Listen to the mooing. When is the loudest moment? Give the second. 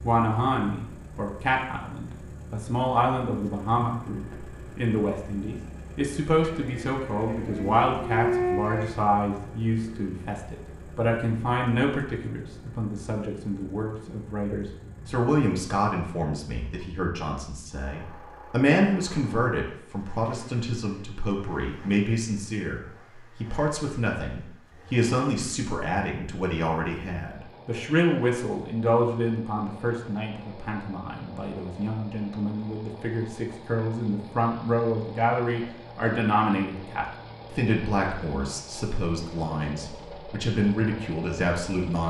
8 s.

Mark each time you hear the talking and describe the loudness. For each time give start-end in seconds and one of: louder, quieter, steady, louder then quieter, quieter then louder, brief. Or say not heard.
0.0-42.0 steady.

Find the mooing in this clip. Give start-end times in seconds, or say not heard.
6.4-9.0.